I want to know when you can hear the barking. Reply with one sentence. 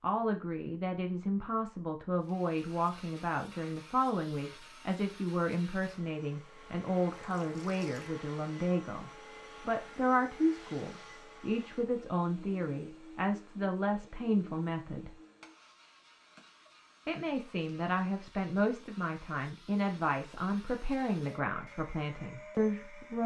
The barking can't be heard in this clip.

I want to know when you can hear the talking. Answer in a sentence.
The talking can be heard from 0.0 to 15.1 s and from 17.1 to 23.2 s.